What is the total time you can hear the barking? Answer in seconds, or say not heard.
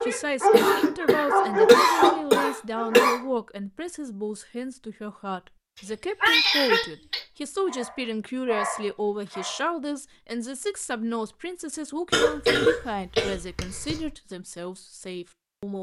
5 s.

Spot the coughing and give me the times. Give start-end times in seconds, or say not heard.
0.5-3.2, 6.2-7.2, 12.1-14.1.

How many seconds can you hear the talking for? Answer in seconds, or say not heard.
16 s.